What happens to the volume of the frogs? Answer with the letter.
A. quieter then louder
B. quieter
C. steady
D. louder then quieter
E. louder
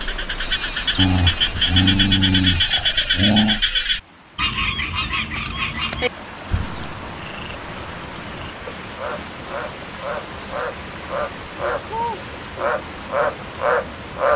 A.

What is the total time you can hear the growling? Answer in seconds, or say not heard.
3 s.